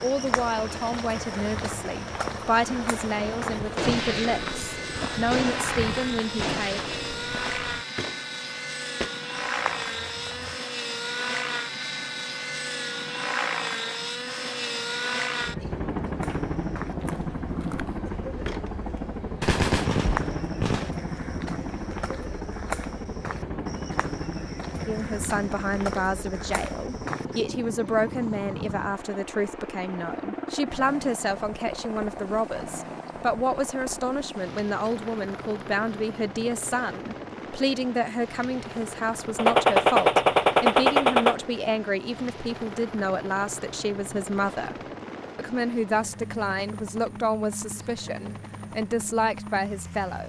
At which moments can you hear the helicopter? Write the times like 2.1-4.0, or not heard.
0.0-50.2.